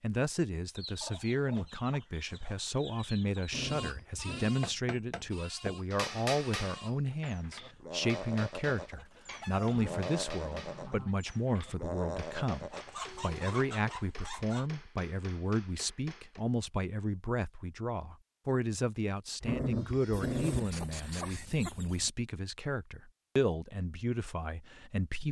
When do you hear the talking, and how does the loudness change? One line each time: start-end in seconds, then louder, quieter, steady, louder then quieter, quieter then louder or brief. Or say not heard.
0.0-25.2 steady.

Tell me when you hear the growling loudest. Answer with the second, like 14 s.
20 s.